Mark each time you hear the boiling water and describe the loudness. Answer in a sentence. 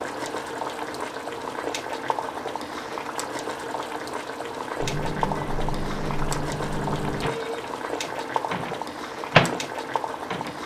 The boiling water can be heard from 0.0 to 10.6 s, at a steady volume.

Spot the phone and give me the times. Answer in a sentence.
The phone can be heard from 7.2 to 7.7 s.